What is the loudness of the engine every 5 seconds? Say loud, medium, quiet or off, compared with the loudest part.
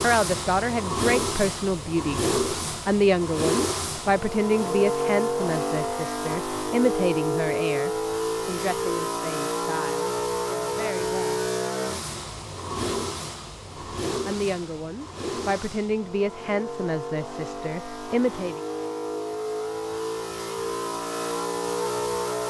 loud, loud, loud, medium, loud.